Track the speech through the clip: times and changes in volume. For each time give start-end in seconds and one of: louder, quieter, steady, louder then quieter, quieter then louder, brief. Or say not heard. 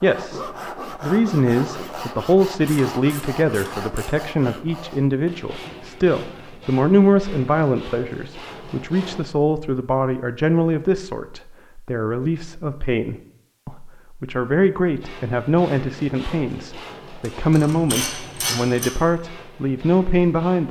0.0-20.6 steady.